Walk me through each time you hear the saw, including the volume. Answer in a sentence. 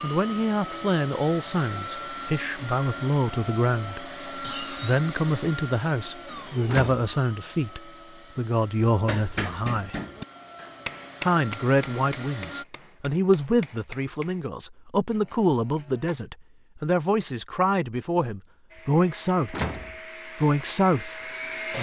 You can't hear the saw here.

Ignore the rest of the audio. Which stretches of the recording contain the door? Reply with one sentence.
You can hear the door from 6.7 to 7.1 s and from 19.5 to 19.9 s.